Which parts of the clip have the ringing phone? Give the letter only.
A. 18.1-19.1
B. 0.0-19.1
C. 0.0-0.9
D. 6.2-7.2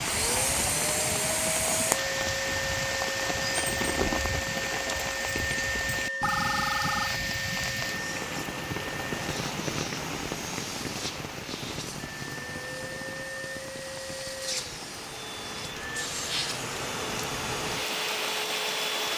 D.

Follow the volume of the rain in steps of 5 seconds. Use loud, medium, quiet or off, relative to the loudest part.
loud, loud, medium, loud.